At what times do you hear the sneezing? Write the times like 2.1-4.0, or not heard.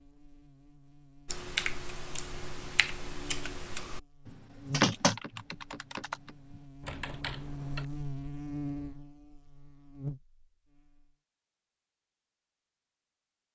not heard.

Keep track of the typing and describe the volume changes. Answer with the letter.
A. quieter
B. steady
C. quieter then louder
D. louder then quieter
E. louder
D.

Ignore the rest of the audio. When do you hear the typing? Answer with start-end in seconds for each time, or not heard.
1.2-7.8.